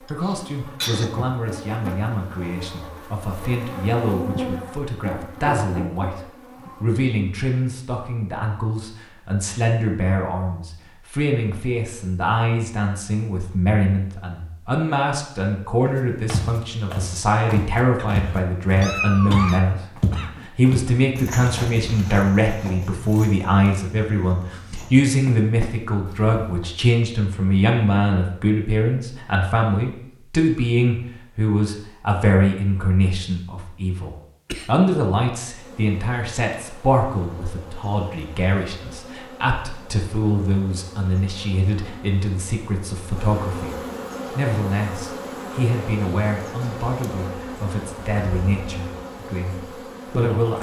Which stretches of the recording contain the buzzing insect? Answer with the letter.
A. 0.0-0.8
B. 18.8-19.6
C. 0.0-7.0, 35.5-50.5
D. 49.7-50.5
C.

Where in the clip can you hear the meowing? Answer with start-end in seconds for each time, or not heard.
18.8-19.6.